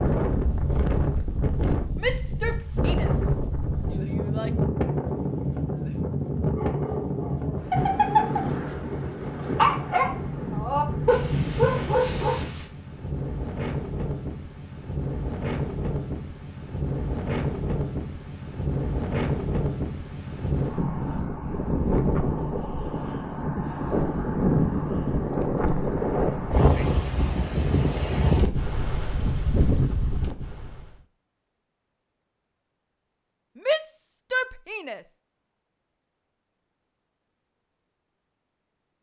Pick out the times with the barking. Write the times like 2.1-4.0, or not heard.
6.5-8.4, 9.1-12.7.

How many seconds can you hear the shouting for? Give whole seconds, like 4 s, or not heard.
4 s.